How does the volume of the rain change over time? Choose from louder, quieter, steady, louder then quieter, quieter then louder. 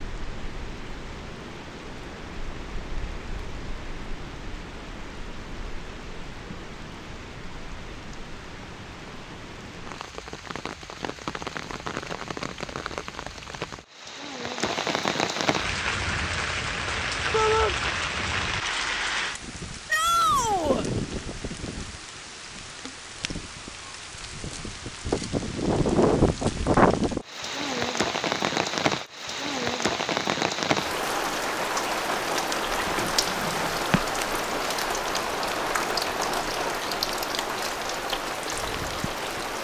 louder.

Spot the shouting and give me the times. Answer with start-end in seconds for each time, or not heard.
17.3-17.8, 19.9-20.9.